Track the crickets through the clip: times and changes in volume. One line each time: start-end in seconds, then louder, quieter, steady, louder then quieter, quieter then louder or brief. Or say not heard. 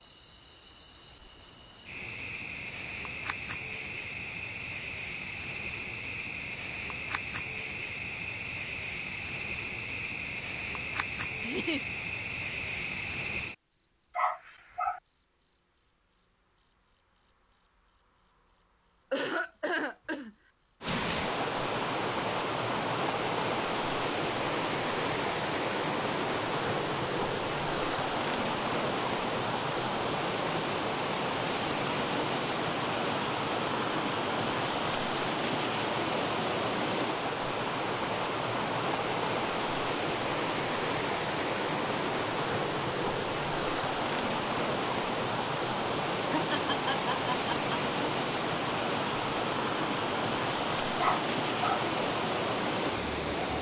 0.0-53.4 louder.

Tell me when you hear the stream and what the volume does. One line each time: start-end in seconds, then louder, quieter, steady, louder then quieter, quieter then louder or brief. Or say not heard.
20.8-53.5 steady.